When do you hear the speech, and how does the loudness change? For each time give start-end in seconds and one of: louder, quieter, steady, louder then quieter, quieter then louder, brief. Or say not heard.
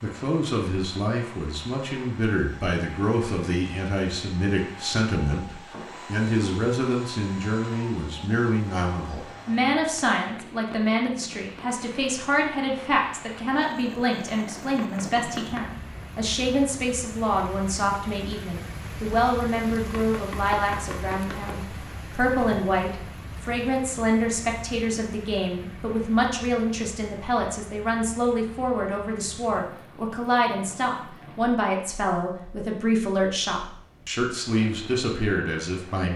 0.0-36.1 steady.